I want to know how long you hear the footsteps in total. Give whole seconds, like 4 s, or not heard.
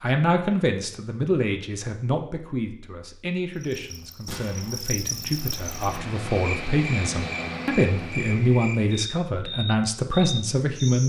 not heard.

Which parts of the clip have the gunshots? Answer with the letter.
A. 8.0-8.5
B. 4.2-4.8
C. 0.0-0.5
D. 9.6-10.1
B.